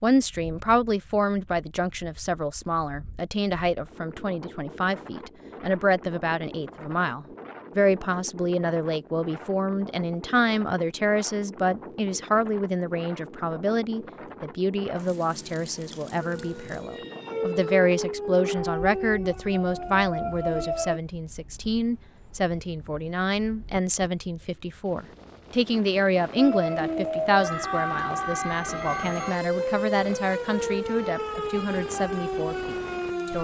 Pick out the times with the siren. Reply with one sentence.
You can hear the siren from 16.2 to 21.0 s and from 26.4 to 33.3 s.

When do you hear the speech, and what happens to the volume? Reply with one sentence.
You can hear the speech from 0.0 to 33.3 s, at a steady volume.